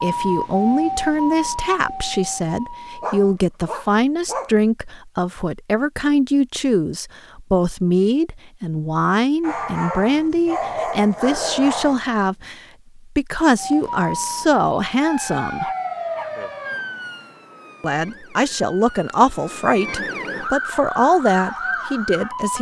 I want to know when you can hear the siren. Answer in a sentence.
The siren can be heard from 0.0 to 3.4 s and from 13.6 to 22.5 s.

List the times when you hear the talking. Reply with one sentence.
The talking can be heard from 0.0 to 15.7 s and from 17.8 to 22.5 s.